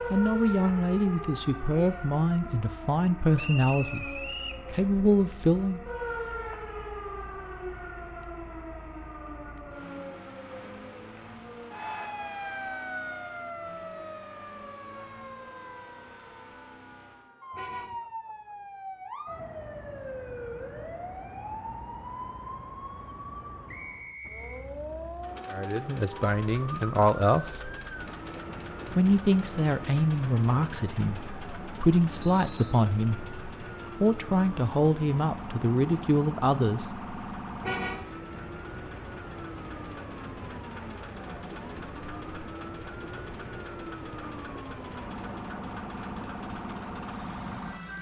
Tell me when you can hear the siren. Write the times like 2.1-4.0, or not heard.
0.0-47.9.